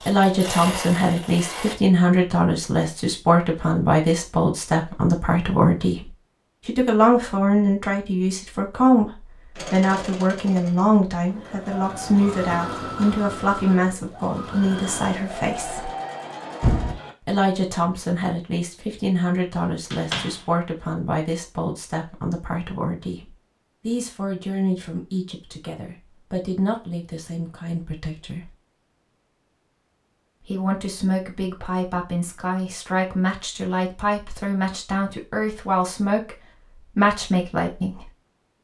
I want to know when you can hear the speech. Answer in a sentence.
The speech can be heard from 0.1 to 15.9 s, from 17.2 to 28.5 s and from 30.4 to 38.6 s.